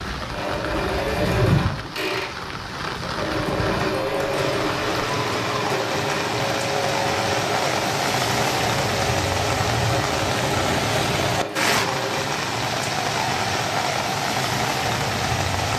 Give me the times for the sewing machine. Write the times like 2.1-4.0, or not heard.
0.1-12.3.